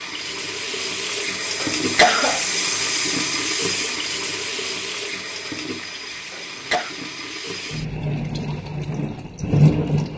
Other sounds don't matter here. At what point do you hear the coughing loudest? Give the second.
2 s.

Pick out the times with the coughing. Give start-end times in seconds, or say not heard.
1.6-2.5, 6.3-7.0.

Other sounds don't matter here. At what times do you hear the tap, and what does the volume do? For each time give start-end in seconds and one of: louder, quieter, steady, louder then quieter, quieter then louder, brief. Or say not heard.
0.0-10.1 quieter then louder.